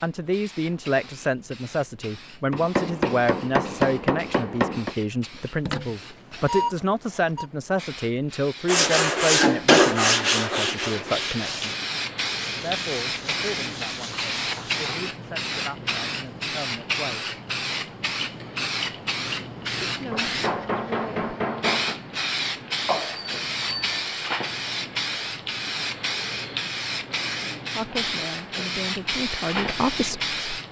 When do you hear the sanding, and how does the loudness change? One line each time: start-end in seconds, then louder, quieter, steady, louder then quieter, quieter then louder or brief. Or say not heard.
8.7-14.9 quieter.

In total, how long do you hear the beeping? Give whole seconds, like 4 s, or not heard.
3 s.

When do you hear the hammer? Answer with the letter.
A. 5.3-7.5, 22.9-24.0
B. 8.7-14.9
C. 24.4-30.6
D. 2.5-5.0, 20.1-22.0
D.